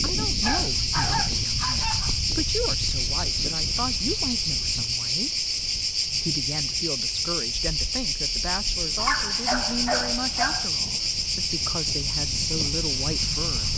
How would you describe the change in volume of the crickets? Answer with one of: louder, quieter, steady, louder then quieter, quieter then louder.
steady.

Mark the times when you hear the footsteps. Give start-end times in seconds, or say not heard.
not heard.